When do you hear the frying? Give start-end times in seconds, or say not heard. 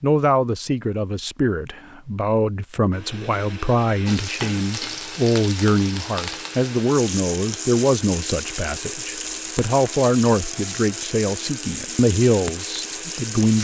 4.0-13.5.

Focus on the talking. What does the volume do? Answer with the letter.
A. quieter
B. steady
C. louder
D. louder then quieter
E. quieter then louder
B.